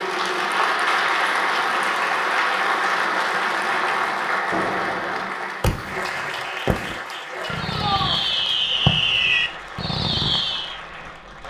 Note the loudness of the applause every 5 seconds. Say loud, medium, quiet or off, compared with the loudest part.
loud, medium, quiet.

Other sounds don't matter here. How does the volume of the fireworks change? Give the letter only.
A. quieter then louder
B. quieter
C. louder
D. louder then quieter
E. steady
C.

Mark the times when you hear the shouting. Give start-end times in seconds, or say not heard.
7.3-8.2.